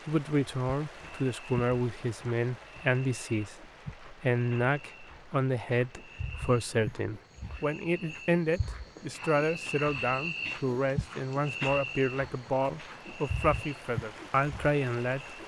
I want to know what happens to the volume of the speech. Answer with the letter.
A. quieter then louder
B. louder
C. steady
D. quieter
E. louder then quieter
C.